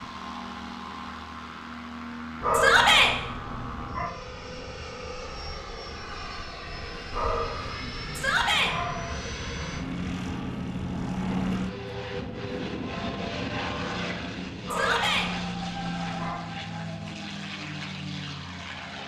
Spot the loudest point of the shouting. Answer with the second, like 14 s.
3 s.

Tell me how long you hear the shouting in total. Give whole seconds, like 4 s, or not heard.
2 s.